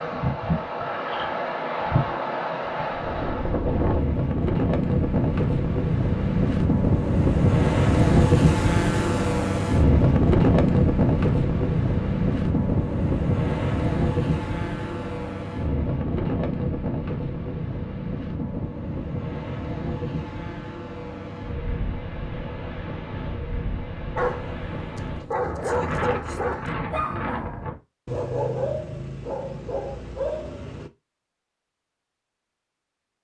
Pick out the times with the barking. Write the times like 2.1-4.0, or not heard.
24.1-30.9.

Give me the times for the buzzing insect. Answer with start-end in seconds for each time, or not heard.
not heard.